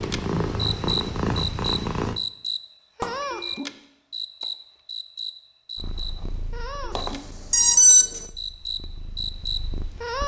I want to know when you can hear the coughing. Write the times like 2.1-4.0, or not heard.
not heard.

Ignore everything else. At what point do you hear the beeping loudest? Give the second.
8 s.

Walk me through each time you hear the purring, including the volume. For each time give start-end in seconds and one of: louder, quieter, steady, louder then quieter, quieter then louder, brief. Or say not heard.
0.0-2.2 brief
5.8-10.2 quieter then louder.